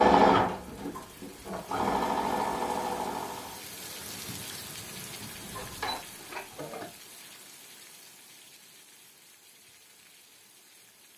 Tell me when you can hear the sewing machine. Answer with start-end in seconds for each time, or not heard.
0.0-3.6, 5.1-6.8.